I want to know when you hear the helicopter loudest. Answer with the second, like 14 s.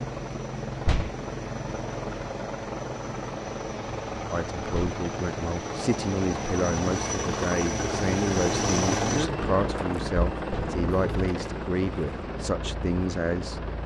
9 s.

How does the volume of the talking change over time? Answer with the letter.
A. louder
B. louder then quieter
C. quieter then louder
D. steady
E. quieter
D.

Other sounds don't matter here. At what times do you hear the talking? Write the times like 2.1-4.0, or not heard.
4.3-13.7.